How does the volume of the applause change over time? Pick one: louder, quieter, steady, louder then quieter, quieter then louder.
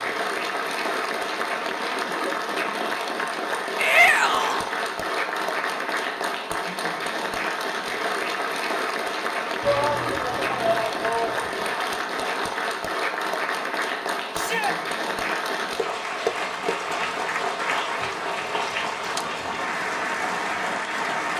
steady.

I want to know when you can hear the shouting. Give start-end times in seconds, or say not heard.
3.8-4.7, 9.6-11.7, 14.3-14.8.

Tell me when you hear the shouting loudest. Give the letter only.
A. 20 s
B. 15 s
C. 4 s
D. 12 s
C.